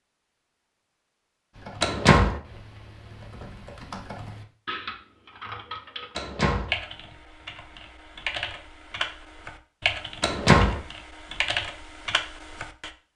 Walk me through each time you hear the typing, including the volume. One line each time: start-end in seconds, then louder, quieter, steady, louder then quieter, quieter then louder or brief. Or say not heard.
1.5-12.9 louder.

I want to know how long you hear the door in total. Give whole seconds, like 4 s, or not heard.
2 s.